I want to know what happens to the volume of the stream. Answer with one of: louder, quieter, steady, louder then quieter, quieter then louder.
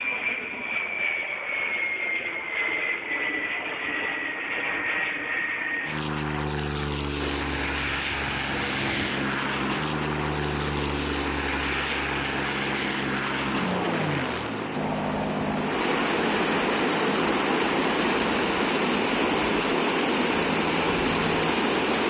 louder.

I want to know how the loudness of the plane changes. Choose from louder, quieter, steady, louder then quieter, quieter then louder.
quieter.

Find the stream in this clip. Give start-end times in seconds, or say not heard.
7.2-22.0.